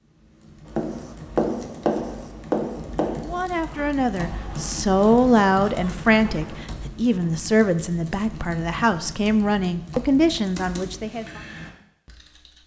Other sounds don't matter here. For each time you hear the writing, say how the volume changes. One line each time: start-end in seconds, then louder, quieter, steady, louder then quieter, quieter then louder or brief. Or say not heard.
0.8-6.7 quieter.